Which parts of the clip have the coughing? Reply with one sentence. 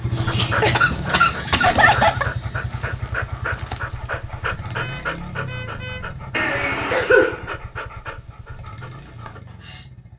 You can hear the coughing from 0.3 to 2.2 s and from 6.3 to 7.5 s.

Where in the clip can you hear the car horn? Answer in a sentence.
The car horn can be heard from 4.8 to 6.1 s.